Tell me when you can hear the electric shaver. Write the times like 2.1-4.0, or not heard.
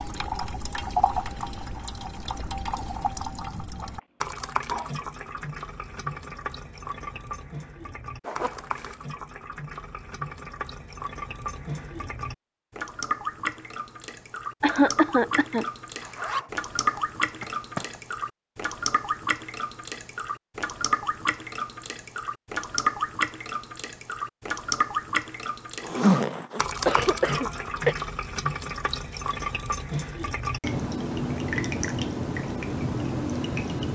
not heard.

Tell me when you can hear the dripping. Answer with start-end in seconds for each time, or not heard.
0.0-33.9.